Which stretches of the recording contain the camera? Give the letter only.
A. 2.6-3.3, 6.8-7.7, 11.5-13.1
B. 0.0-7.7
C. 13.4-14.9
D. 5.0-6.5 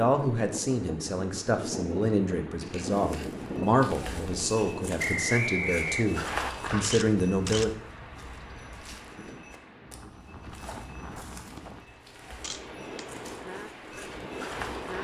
A.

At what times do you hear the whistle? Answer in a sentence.
The whistle can be heard from 5.0 to 6.5 s.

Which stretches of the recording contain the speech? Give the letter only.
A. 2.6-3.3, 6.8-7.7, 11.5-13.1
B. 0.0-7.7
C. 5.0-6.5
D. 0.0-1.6
B.